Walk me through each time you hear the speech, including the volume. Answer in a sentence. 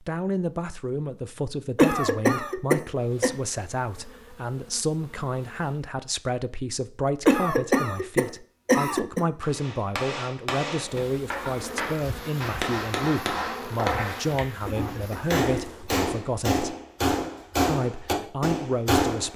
You can hear the speech from 0.1 to 16.8 s, at a steady volume; and briefly from 17.6 to 19.3 s.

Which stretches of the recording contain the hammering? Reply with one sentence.
The hammering can be heard from 9.4 to 19.3 s.